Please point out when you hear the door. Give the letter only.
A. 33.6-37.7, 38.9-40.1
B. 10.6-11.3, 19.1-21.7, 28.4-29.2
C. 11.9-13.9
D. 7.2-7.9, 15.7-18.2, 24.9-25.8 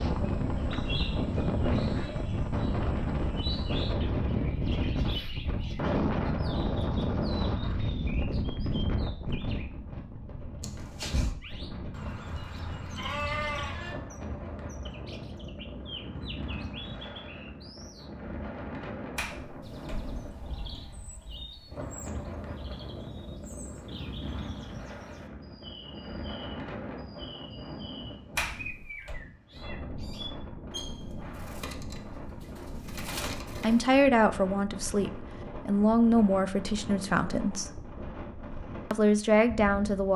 B.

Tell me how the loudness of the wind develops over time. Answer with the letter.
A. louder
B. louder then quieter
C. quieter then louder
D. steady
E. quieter
E.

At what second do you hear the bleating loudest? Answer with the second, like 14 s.
13 s.